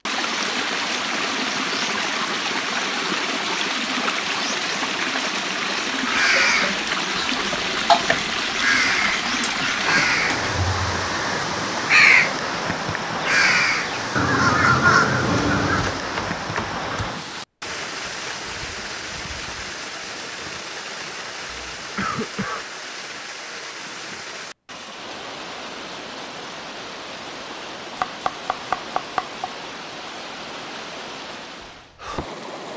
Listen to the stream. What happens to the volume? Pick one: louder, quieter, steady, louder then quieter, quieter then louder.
quieter.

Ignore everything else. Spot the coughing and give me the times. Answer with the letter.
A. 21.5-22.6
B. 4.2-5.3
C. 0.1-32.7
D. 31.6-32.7
A.